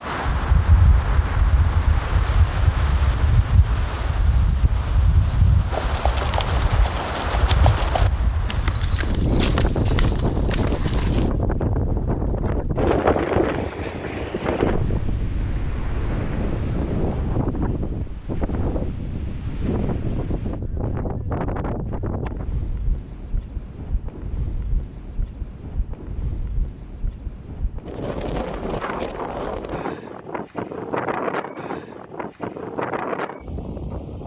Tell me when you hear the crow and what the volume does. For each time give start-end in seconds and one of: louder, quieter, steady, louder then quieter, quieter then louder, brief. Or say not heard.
not heard.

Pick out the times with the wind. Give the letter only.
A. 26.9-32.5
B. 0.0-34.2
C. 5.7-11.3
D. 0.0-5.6
B.